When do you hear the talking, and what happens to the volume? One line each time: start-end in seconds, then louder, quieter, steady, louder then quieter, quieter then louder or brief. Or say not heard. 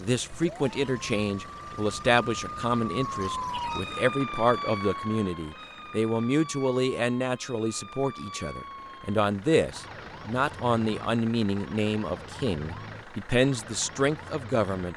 0.0-14.9 steady.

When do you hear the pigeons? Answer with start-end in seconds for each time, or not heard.
not heard.